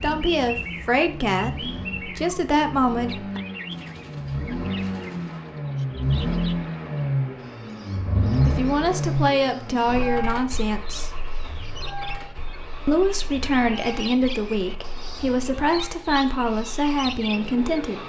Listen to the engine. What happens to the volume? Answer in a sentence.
The volume of the engine goes up, then down.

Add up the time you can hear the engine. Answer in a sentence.
You can hear the engine for 18 seconds altogether.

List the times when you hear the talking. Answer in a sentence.
The talking can be heard from 0.0 to 3.4 s, from 8.2 to 11.2 s and from 12.8 to 18.0 s.